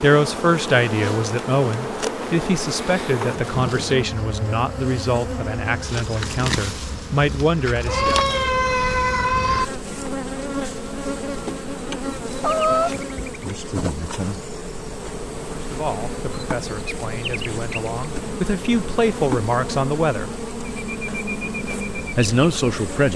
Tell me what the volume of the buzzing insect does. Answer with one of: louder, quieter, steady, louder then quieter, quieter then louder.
steady.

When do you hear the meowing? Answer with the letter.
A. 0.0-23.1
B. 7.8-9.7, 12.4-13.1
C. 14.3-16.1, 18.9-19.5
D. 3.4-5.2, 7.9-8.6
B.